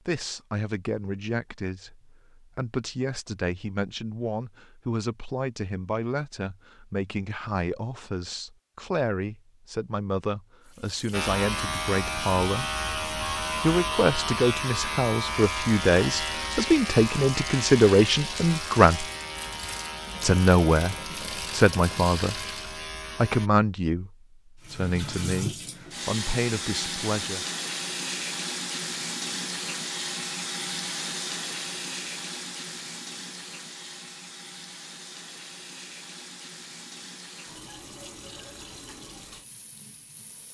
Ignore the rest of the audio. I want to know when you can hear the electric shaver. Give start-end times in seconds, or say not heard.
11.1-23.5.